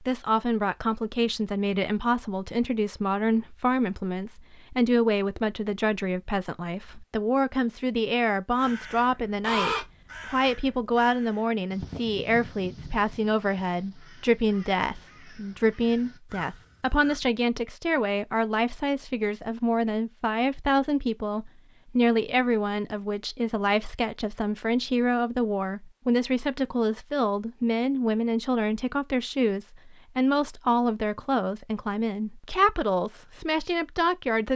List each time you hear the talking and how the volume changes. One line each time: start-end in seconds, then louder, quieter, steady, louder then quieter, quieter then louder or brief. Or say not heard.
0.0-34.5 steady.